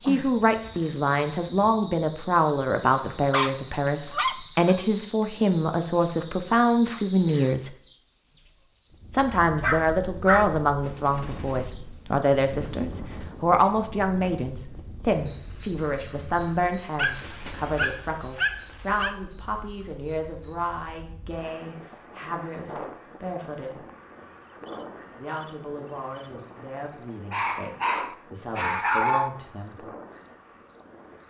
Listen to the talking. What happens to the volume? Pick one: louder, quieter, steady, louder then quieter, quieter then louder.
quieter.